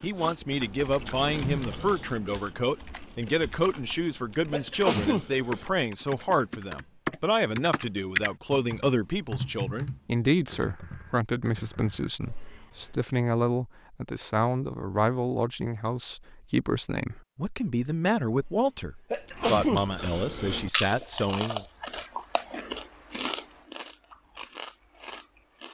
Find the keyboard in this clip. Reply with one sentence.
You can hear the keyboard from 0.8 to 12.2 s.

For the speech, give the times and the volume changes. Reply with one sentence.
You can hear the speech from 0.0 to 21.6 s, at a steady volume.